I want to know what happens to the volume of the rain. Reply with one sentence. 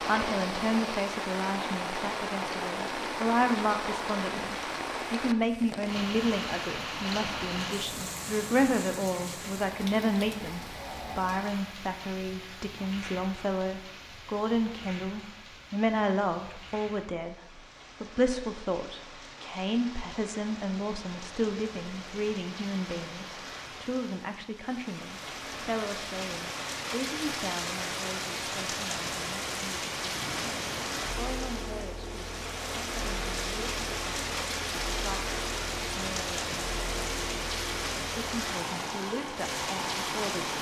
The loudness of the rain goes down, then up.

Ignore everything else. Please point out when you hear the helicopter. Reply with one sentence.
The helicopter can be heard from 30.1 to 40.5 s.